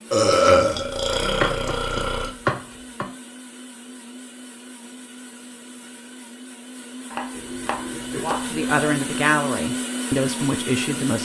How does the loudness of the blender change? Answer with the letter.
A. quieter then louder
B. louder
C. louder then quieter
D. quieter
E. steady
B.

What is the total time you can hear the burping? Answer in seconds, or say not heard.
4 s.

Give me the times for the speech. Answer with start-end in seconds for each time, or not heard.
8.2-11.2.